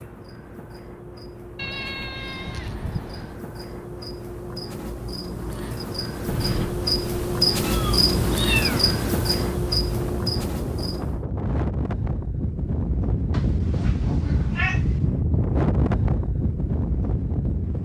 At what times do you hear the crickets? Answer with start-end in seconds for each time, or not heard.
0.0-11.2.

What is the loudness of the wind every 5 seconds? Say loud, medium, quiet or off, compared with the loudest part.
off, medium, loud, loud.